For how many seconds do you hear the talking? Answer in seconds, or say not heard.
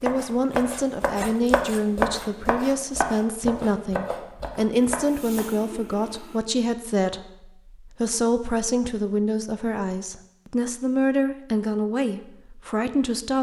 13 s.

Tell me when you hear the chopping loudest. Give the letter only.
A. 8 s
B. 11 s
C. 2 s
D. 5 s
C.